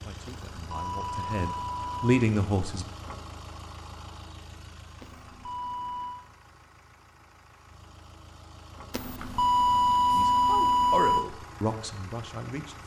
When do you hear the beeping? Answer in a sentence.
You can hear the beeping from 0.2 to 2.2 s, from 5.0 to 6.2 s and from 8.9 to 11.2 s.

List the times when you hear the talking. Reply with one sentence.
You can hear the talking from 0.0 to 2.9 s and from 10.1 to 12.8 s.